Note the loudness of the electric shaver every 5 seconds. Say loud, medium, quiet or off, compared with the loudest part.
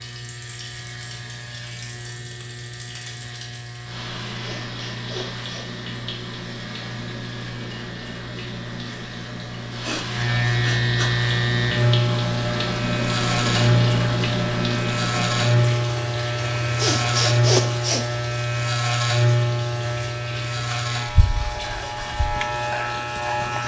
quiet, quiet, loud, loud, medium.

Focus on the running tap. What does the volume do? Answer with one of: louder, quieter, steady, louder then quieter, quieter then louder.
louder then quieter.